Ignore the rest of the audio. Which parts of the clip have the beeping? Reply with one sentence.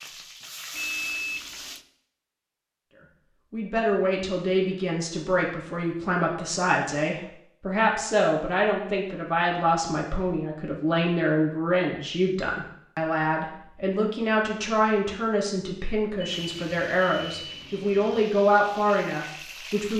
The beeping can be heard from 0.7 to 1.8 s and from 16.2 to 18.2 s.